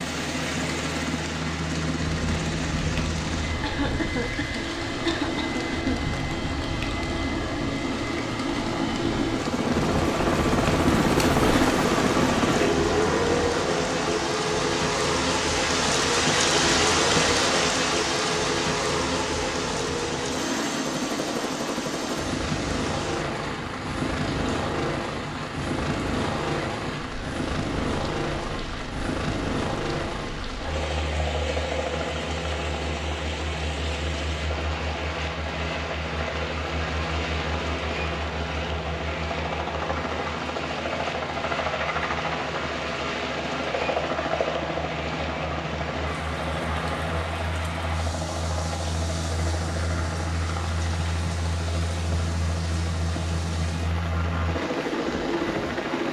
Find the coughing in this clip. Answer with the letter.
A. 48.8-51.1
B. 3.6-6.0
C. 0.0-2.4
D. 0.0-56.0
B.